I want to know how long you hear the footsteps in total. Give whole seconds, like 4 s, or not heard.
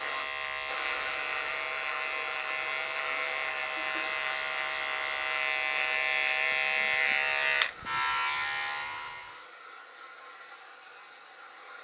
not heard.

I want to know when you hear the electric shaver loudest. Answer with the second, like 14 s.
7 s.